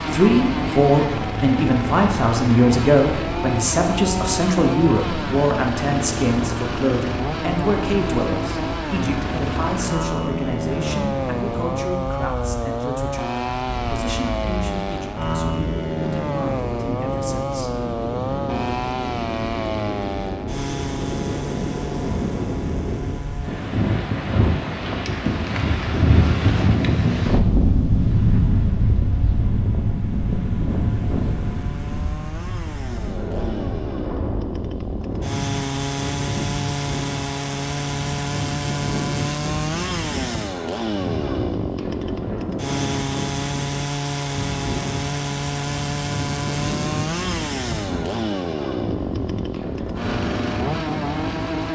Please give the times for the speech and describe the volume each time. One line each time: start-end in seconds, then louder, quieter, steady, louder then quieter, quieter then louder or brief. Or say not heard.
0.0-17.9 quieter.